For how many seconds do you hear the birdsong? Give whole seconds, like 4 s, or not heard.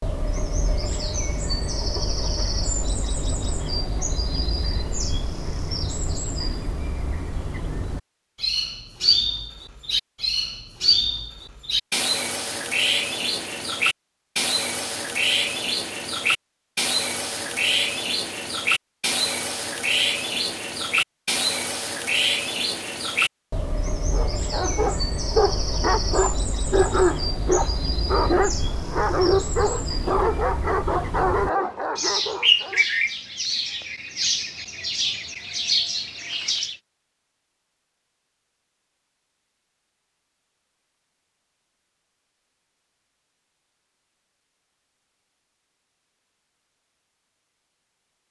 37 s.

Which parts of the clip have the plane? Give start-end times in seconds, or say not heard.
not heard.